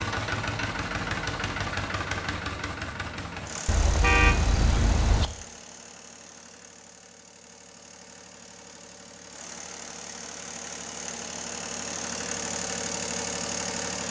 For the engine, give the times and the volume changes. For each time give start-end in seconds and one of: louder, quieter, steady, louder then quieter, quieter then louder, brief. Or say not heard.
0.0-14.0 quieter then louder.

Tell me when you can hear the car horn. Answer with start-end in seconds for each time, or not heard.
3.6-5.3.